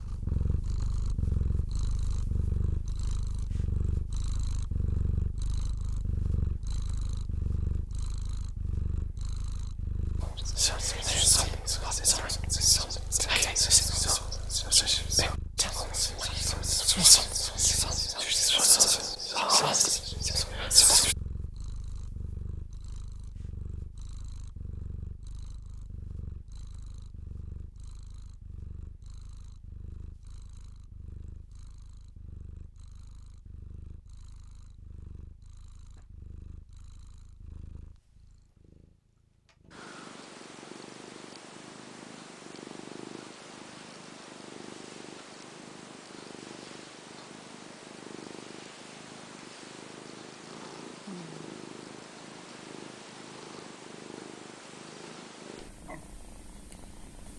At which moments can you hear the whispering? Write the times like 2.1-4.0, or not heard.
10.2-21.1.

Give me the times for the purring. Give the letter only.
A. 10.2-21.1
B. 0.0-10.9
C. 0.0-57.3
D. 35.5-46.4
C.